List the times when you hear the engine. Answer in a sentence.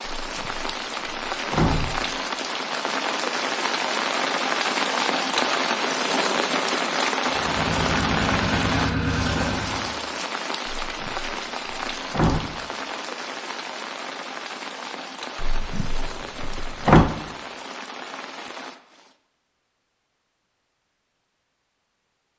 The engine can be heard from 7.2 to 9.9 s.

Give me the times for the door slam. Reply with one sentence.
The door slam can be heard from 0.1 to 2.0 s, from 10.7 to 12.4 s and from 15.3 to 17.1 s.